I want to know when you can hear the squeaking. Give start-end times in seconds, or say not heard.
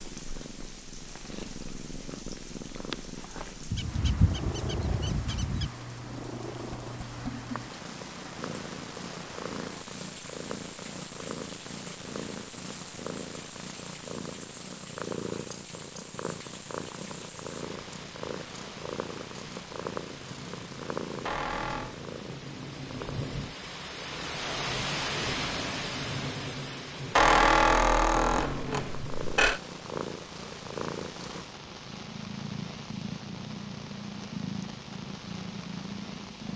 3.7-5.7, 21.2-21.9, 27.1-29.6.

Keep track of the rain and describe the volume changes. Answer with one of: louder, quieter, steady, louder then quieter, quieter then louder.
louder then quieter.